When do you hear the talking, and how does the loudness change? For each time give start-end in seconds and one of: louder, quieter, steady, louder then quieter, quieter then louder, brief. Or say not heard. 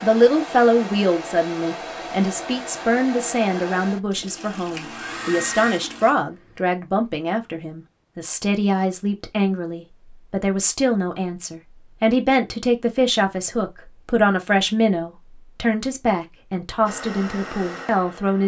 0.0-18.4 steady.